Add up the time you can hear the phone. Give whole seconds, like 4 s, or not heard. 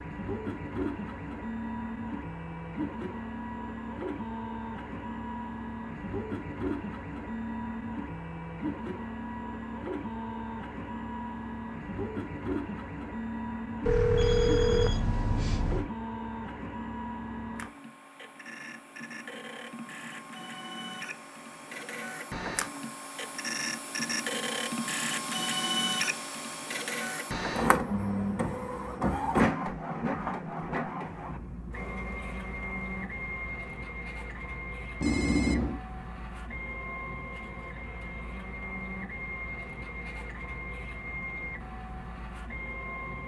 3 s.